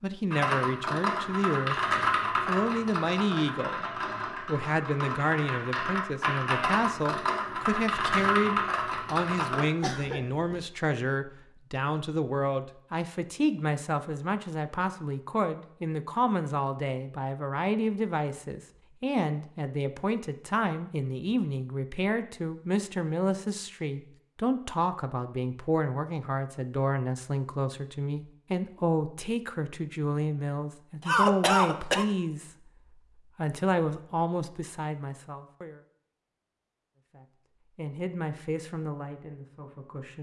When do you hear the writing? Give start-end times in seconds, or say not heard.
not heard.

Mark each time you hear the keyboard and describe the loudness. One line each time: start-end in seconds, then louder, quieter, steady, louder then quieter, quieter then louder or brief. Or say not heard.
0.3-9.7 quieter then louder.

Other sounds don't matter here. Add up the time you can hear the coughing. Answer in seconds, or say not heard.
2 s.